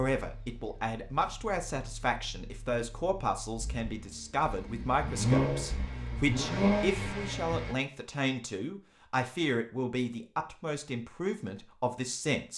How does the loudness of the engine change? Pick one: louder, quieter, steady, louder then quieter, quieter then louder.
louder.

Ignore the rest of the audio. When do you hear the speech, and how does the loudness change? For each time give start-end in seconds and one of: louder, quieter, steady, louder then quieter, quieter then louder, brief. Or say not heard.
0.0-12.5 steady.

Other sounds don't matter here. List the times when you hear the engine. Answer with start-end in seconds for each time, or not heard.
0.1-7.8.